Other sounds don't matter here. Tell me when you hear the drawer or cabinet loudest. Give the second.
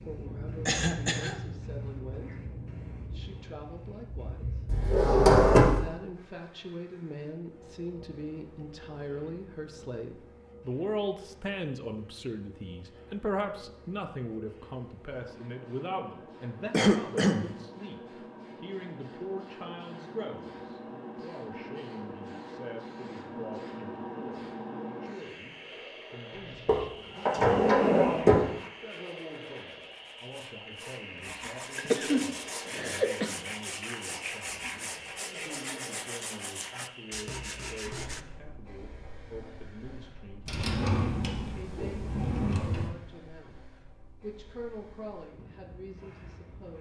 5 s.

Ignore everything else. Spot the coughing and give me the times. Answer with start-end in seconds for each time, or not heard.
0.7-1.4, 16.7-17.5, 31.8-33.3.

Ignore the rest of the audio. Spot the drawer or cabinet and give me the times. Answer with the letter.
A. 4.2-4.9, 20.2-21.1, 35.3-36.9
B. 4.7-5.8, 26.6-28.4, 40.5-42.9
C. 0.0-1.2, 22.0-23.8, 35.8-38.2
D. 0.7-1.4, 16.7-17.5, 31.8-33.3
B.